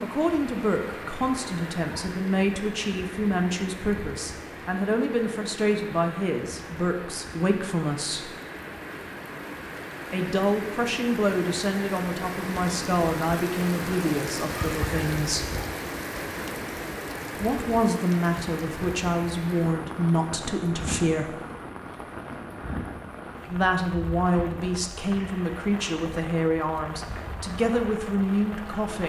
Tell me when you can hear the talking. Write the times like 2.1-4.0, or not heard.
0.0-8.3, 10.1-15.4, 17.4-21.4, 23.4-29.0.